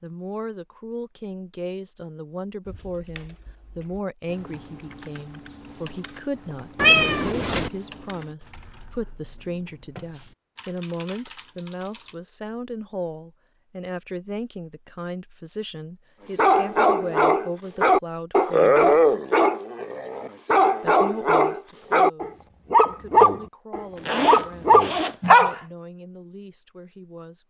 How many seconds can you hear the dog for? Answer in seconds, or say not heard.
9 s.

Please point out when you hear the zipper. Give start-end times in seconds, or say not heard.
23.9-25.2.